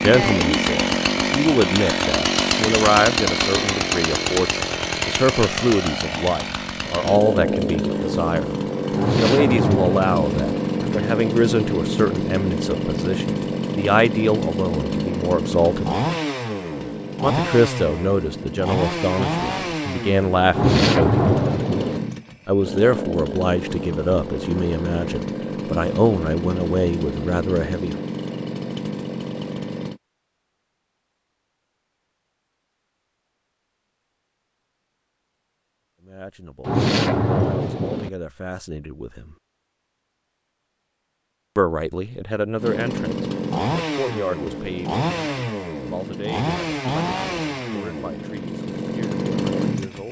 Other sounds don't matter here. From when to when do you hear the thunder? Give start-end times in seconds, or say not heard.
8.9-10.3, 20.5-22.0, 36.6-38.1.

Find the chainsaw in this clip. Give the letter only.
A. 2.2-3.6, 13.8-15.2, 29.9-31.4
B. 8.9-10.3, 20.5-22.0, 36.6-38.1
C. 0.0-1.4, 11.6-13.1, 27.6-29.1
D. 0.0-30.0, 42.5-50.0
D.